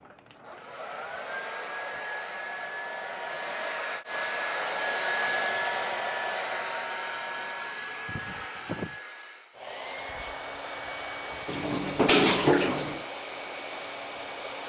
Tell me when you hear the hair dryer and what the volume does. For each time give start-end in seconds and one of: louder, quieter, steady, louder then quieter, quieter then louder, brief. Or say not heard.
0.0-14.6 louder then quieter.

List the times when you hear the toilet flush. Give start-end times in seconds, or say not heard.
11.4-13.1.